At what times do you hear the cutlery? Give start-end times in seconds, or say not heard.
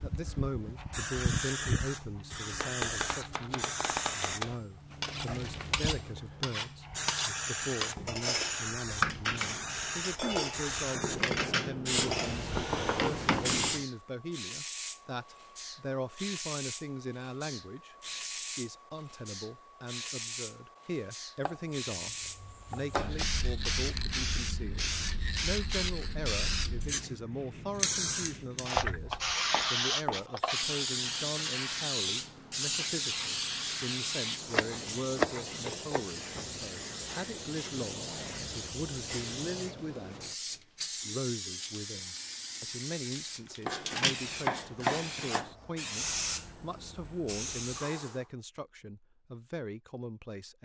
5.0-13.7.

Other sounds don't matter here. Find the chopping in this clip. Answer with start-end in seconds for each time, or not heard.
2.5-4.5, 10.9-13.8, 21.4-23.2, 28.8-30.2, 34.5-36.0, 43.6-45.5.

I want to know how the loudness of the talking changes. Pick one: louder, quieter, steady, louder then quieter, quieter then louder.
steady.